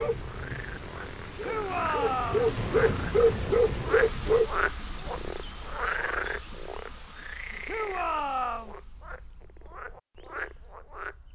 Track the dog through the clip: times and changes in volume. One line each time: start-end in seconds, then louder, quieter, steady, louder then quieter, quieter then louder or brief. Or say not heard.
0.0-4.5 louder.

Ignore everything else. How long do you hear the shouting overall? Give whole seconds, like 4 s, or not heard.
2 s.